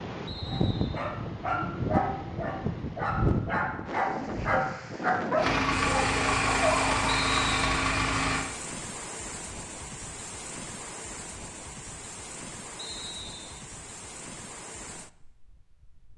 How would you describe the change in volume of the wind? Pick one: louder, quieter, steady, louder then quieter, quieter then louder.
quieter.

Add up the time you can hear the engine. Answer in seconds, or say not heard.
3 s.